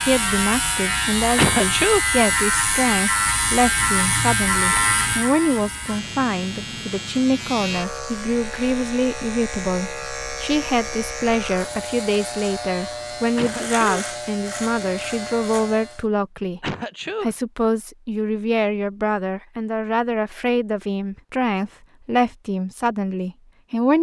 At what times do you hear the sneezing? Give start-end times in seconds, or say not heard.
1.4-2.0, 13.3-13.8, 16.6-17.4.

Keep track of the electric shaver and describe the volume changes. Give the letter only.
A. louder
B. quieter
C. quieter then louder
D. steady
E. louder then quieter
B.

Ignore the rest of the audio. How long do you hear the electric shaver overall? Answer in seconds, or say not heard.
16 s.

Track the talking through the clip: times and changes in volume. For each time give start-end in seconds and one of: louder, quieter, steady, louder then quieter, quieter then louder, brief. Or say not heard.
0.0-23.9 steady.